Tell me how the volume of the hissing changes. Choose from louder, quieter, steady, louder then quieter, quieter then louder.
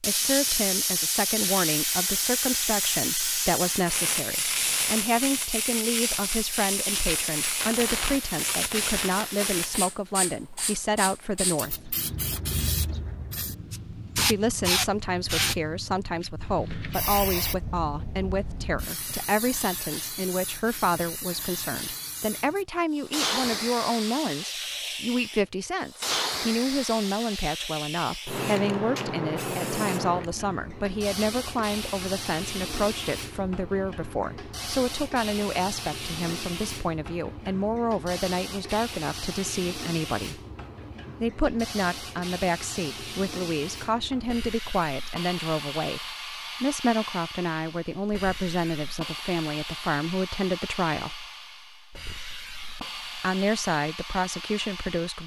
quieter.